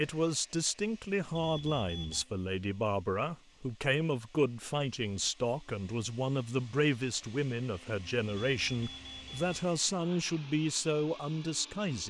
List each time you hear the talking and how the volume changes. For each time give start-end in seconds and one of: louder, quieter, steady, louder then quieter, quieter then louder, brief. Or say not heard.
0.0-12.0 steady.